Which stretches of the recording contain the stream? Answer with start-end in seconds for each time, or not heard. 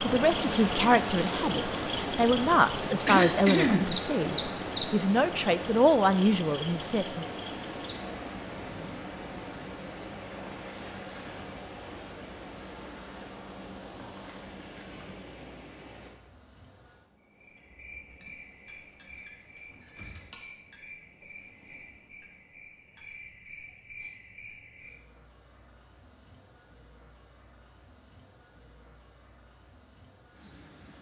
0.0-16.2.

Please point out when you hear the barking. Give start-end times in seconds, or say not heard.
not heard.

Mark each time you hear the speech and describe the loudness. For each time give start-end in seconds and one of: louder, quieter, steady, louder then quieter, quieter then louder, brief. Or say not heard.
0.0-7.2 steady.